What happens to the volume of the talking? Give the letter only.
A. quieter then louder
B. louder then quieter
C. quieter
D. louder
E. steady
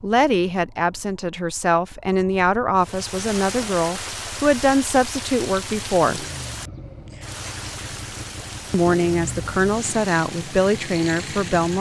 E.